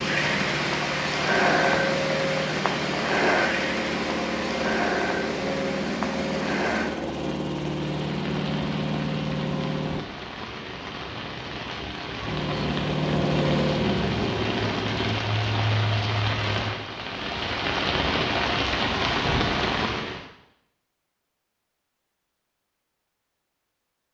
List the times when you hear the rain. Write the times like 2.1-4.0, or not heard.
0.0-20.2.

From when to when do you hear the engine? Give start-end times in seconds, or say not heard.
0.0-10.1, 12.2-15.2.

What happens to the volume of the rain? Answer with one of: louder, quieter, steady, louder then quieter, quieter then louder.
quieter then louder.